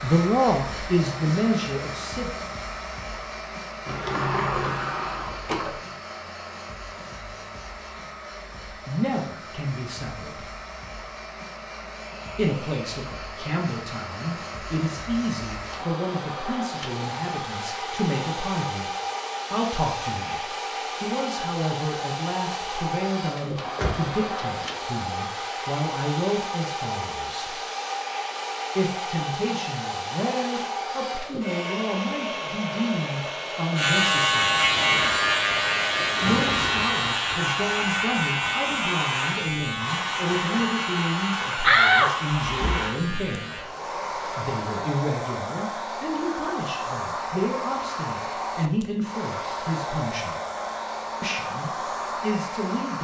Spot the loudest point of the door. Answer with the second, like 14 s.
42 s.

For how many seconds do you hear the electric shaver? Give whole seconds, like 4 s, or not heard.
10 s.